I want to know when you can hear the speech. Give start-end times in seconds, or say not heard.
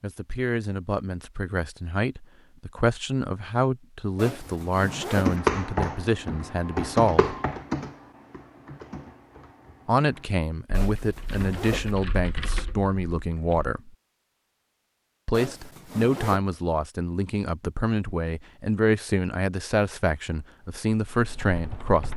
0.0-7.3, 9.8-13.9, 15.2-22.1.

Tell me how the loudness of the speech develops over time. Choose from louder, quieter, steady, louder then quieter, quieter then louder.
steady.